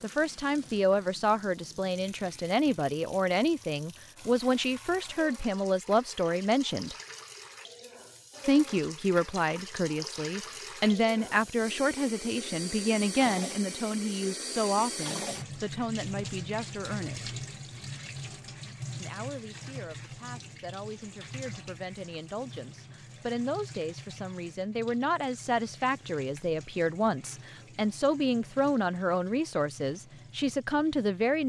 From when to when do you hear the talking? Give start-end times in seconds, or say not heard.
0.0-7.0, 8.4-17.3, 19.0-31.4.